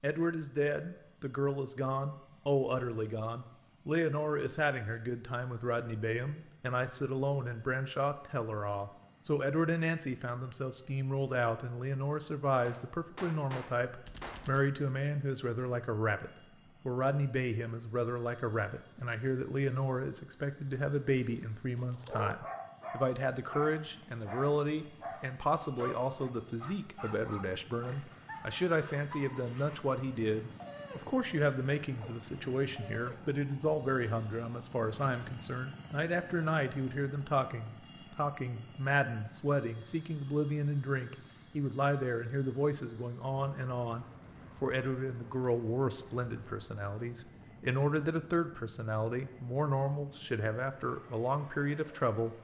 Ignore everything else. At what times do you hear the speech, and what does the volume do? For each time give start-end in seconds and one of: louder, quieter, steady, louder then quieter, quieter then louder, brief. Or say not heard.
0.0-52.3 steady.